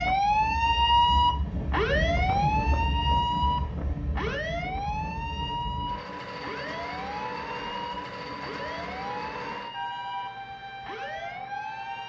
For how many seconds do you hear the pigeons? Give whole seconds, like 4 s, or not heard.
not heard.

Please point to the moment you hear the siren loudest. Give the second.
1 s.